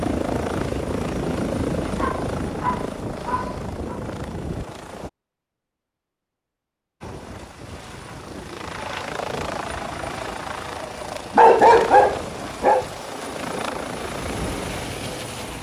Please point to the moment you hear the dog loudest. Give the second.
12 s.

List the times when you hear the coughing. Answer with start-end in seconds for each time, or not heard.
not heard.